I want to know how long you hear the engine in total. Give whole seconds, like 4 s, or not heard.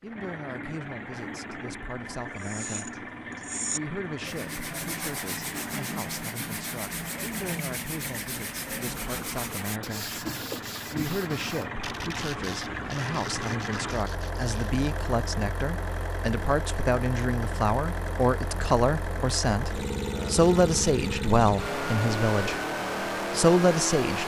24 s.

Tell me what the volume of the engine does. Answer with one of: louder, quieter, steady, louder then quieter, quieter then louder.
louder.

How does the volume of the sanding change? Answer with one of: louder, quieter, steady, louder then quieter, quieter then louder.
quieter.